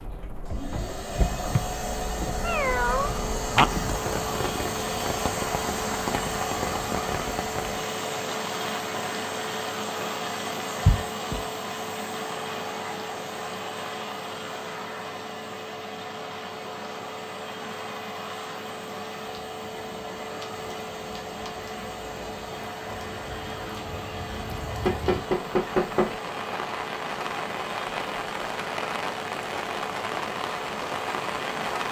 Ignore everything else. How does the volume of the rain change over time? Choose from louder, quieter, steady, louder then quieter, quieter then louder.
quieter then louder.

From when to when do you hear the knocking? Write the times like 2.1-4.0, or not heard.
10.8-11.4, 24.9-26.1.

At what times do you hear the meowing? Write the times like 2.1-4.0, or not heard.
2.4-3.6.